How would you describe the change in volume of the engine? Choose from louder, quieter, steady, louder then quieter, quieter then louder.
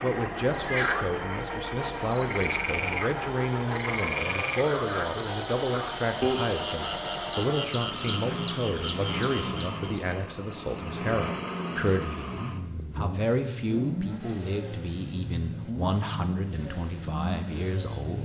steady.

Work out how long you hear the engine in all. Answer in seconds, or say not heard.
18 s.